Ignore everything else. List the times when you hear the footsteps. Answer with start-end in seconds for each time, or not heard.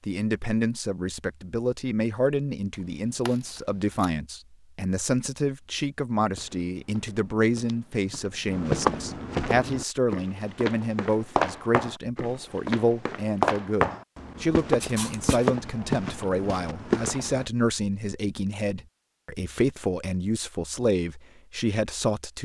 6.3-17.4.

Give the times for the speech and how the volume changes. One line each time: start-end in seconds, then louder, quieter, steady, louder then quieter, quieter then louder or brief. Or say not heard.
0.1-22.4 steady.